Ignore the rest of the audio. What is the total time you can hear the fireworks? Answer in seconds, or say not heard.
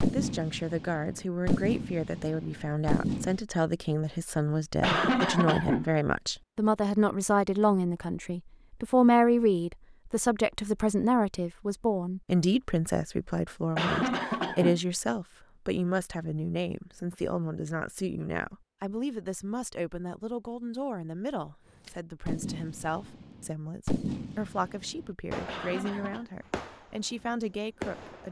10 s.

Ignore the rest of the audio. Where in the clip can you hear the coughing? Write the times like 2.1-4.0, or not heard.
4.8-5.8, 13.8-14.8, 25.4-26.2.